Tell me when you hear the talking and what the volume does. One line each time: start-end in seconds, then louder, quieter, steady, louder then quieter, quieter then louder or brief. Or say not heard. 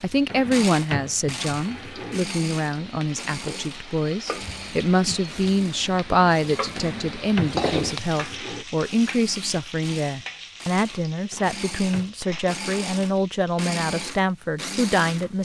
0.0-15.4 steady.